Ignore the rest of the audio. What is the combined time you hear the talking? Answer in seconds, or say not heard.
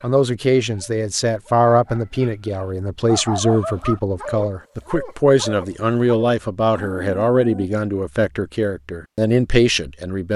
10 s.